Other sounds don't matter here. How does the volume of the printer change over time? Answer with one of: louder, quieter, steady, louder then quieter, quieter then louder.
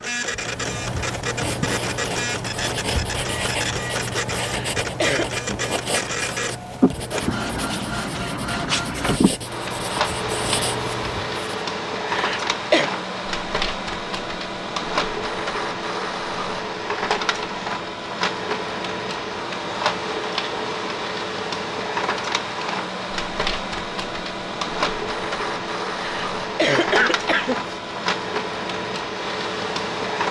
steady.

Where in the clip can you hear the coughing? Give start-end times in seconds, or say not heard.
4.4-5.4, 12.1-12.9, 25.9-27.8.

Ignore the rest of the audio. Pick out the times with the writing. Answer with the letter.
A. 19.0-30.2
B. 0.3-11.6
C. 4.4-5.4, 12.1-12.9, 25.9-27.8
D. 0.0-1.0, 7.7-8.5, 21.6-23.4
B.